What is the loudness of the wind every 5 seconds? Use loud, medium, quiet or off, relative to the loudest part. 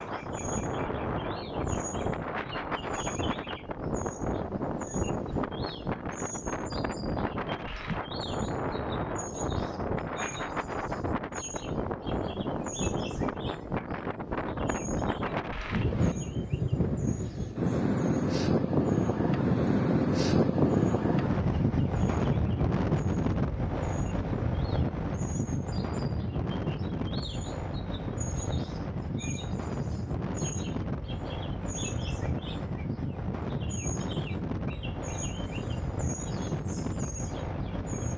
medium, medium, medium, loud, loud, medium, medium, medium.